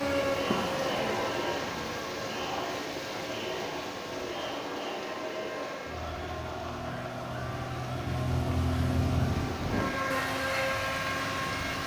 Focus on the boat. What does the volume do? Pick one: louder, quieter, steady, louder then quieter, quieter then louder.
quieter then louder.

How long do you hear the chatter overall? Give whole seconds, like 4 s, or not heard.
12 s.